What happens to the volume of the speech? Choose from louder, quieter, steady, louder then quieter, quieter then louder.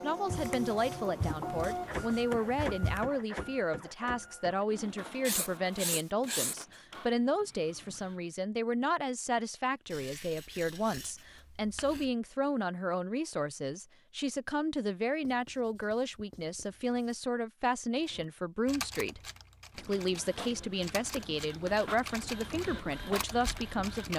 steady.